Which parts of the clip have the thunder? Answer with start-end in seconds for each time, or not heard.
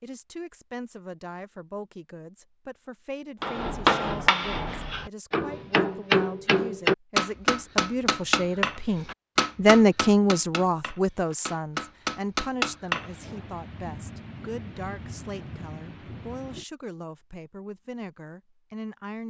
13.0-16.6.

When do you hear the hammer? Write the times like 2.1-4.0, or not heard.
3.4-13.1.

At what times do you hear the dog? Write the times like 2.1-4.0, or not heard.
not heard.